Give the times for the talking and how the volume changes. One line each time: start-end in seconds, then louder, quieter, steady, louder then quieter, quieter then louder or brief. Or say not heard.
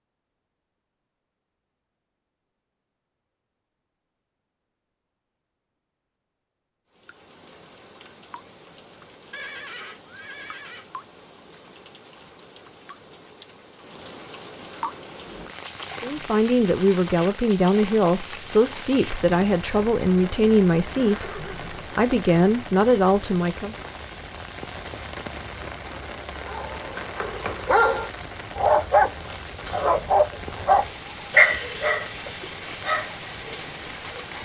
16.0-23.8 steady.